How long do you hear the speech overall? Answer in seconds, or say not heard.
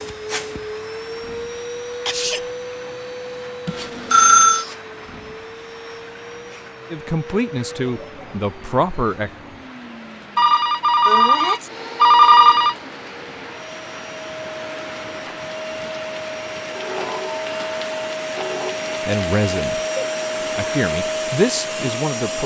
5 s.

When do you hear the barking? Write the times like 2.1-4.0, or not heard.
not heard.